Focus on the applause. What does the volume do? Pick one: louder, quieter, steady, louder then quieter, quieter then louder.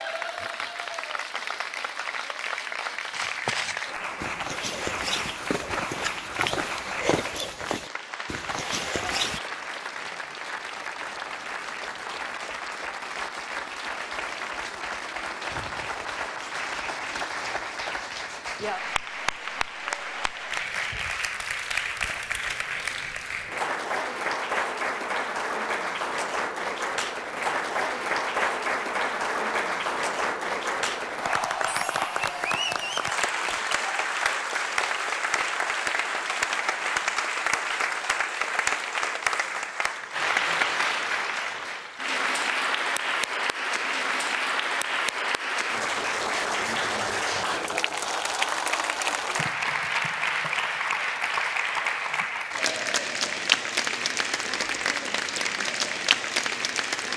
louder.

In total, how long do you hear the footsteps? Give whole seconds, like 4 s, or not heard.
6 s.